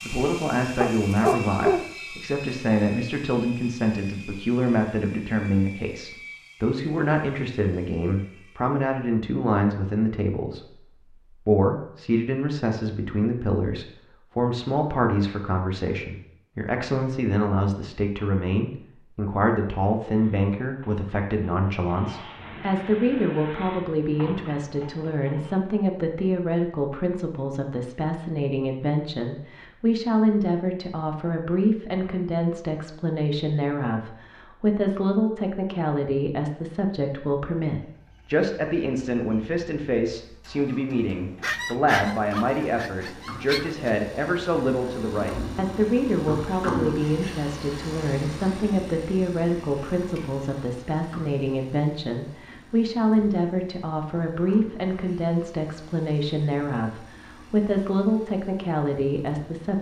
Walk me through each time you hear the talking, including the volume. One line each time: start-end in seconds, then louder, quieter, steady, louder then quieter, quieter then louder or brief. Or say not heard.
0.1-59.7 steady.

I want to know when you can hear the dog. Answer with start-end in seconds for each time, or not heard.
0.8-1.9, 41.4-43.9.